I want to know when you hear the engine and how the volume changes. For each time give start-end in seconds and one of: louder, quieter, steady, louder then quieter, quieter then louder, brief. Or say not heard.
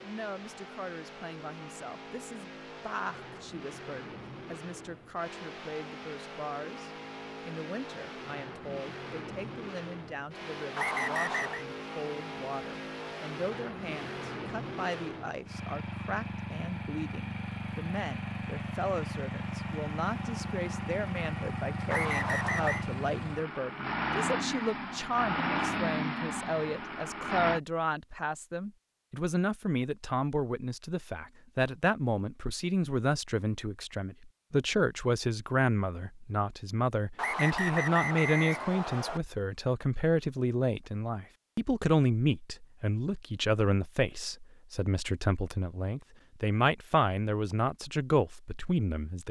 0.0-27.6 louder.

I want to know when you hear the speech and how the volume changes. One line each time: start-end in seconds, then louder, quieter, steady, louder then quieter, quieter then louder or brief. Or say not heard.
0.0-49.2 louder.